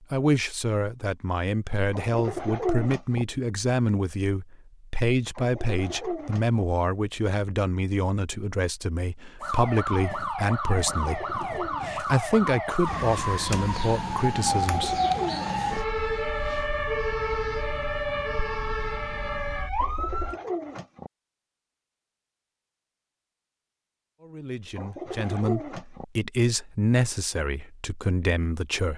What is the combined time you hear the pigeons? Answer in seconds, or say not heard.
8 s.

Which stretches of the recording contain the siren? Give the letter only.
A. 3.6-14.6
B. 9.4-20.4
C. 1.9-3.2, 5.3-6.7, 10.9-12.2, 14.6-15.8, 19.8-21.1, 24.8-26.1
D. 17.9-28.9
B.